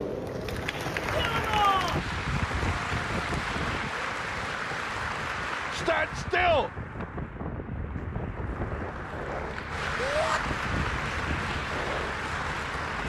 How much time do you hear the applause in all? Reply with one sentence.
You can hear the applause for 13 seconds altogether.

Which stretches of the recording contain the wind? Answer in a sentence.
The wind can be heard from 0.1 to 13.0 s.